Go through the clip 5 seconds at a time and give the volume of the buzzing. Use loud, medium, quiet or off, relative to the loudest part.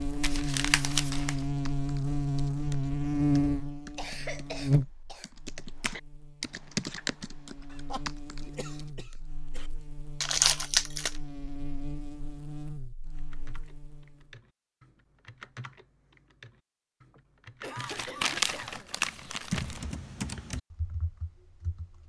loud, quiet, quiet, off, off.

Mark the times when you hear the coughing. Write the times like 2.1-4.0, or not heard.
4.0-5.3, 7.7-9.7, 17.1-18.9.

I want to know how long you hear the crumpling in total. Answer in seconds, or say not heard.
4 s.